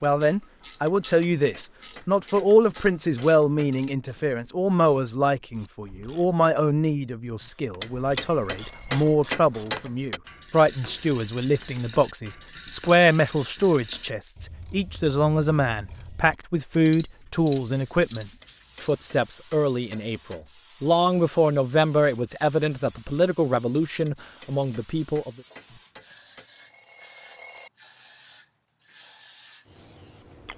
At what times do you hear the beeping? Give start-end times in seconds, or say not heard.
7.4-9.2, 25.7-27.7.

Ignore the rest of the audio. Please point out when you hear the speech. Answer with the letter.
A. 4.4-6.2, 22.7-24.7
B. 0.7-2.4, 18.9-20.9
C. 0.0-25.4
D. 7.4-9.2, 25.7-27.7
C.